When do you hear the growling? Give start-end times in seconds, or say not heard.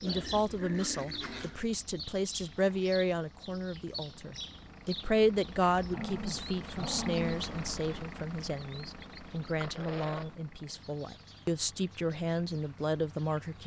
0.1-1.6, 5.9-7.4, 9.6-10.2.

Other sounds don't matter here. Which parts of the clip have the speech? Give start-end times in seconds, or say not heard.
0.0-13.6.